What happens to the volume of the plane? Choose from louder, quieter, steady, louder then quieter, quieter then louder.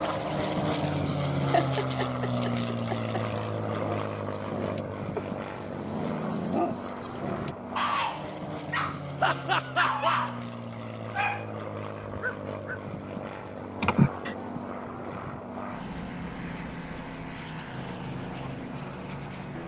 quieter.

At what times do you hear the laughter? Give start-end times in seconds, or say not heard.
1.4-3.1, 9.2-10.2, 13.8-14.3.